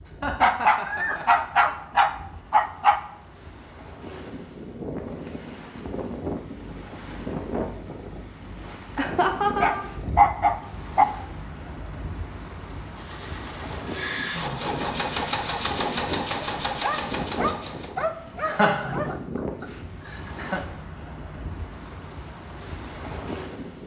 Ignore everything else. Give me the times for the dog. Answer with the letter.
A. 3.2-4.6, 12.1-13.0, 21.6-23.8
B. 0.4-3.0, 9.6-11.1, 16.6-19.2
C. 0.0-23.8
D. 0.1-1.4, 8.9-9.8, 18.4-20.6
B.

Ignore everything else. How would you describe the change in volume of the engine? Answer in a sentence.
The volume of the engine goes up.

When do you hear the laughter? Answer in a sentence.
The laughter can be heard from 0.1 to 1.4 s, from 8.9 to 9.8 s and from 18.4 to 20.6 s.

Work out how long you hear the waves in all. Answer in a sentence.
The waves can be heard for 24 seconds in total.